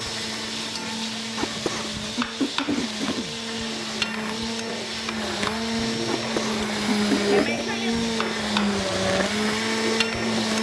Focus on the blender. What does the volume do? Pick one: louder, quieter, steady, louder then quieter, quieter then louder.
louder.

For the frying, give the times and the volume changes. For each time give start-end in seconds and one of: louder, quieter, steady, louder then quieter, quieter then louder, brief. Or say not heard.
0.0-10.5 steady.